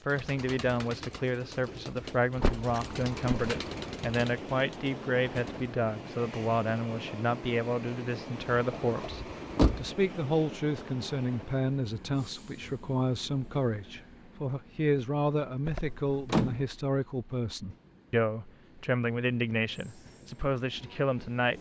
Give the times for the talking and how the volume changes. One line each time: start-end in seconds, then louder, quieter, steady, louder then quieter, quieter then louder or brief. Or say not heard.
0.1-21.5 steady.